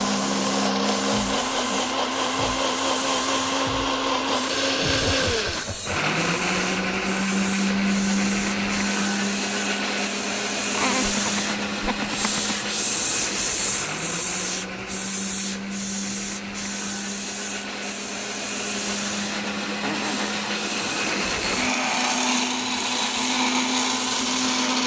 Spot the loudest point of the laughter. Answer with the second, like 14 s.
11 s.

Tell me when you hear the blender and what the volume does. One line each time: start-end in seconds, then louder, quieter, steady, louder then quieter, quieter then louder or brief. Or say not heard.
0.0-24.8 quieter then louder.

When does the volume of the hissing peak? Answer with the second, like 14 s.
13 s.